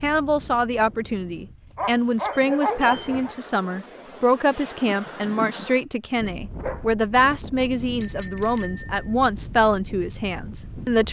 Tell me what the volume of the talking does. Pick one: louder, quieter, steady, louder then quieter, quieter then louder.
steady.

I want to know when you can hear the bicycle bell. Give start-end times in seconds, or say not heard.
2.3-3.0, 8.0-9.2.